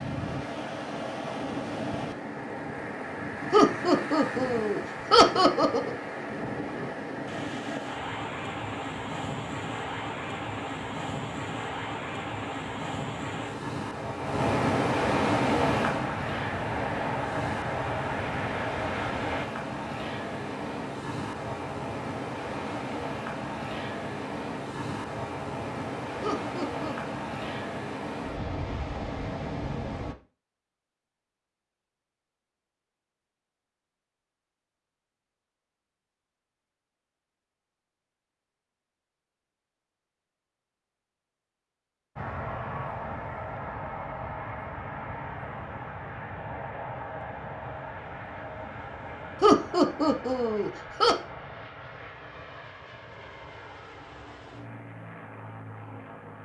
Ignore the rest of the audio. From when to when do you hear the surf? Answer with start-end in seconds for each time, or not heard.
0.0-30.1.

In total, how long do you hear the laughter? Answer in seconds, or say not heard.
5 s.